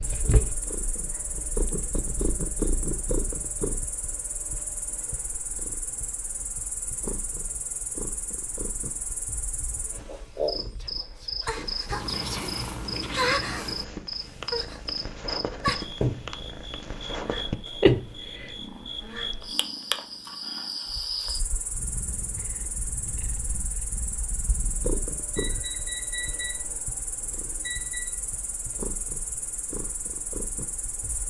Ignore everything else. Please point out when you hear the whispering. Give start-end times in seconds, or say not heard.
10.8-12.6.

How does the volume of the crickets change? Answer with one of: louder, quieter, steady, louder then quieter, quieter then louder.
louder then quieter.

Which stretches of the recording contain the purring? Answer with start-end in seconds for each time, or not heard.
0.0-31.2.